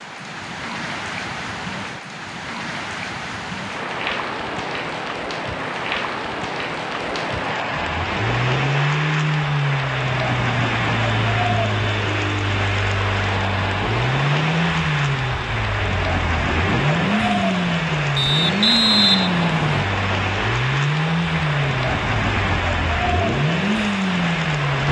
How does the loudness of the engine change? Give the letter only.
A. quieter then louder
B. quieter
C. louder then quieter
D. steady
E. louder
D.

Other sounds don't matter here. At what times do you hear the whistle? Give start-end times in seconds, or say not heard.
18.1-19.9.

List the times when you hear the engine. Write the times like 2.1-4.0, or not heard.
7.9-24.8.